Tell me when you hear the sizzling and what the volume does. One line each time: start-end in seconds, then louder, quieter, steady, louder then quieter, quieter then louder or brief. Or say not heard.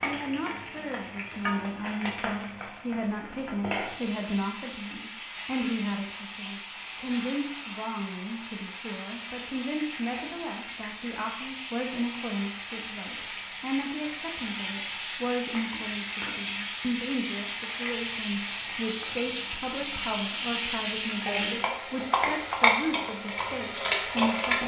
0.0-24.6 louder.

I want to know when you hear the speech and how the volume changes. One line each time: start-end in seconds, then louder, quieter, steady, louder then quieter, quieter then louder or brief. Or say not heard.
0.0-24.6 steady.